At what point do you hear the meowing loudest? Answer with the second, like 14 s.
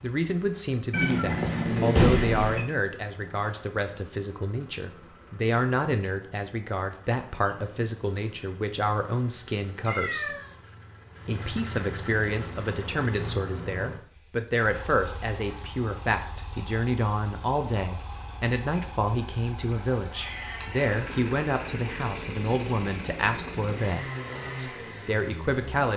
2 s.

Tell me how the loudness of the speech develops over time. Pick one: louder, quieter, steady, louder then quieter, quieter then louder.
steady.